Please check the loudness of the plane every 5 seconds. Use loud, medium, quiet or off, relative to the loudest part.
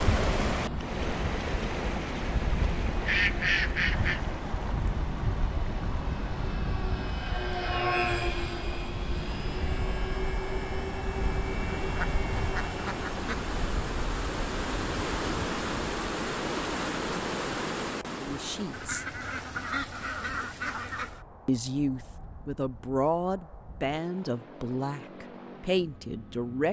loud, loud, loud, quiet, quiet, quiet.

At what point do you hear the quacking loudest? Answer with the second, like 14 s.
3 s.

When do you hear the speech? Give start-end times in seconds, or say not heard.
18.2-19.1, 21.4-26.6.